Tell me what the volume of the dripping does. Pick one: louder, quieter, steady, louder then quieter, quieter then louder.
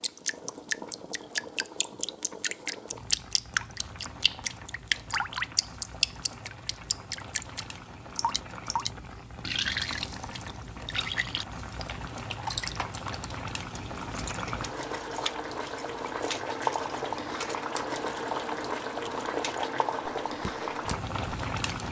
quieter.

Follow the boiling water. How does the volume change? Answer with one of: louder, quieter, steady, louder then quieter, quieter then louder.
louder.